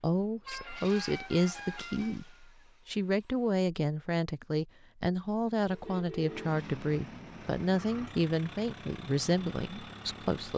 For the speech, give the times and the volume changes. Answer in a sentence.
You can hear the speech from 0.0 to 10.5 s, at a steady volume.